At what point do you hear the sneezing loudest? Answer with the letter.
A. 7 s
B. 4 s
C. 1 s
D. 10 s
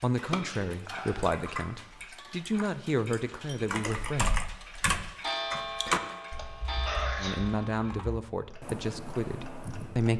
A.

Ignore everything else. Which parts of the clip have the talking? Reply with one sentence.
The talking can be heard from 0.0 to 4.3 s and from 7.2 to 10.1 s.